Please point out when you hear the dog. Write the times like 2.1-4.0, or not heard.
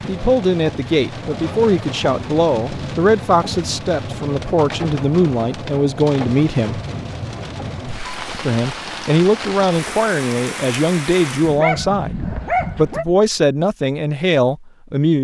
11.4-13.1.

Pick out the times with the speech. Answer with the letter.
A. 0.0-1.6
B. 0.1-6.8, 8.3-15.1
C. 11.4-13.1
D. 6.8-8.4
B.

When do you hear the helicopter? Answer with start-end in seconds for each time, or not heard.
not heard.